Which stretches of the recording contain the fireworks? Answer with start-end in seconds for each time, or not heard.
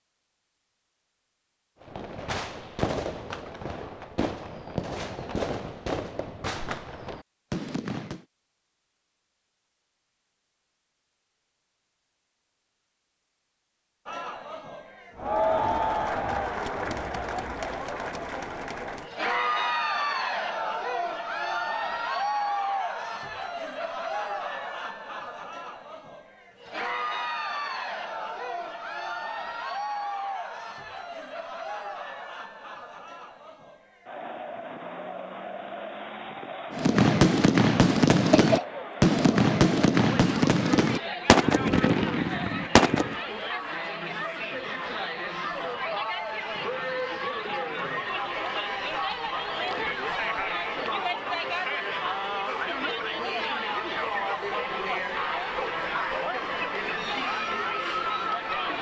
1.8-8.2, 36.7-43.2.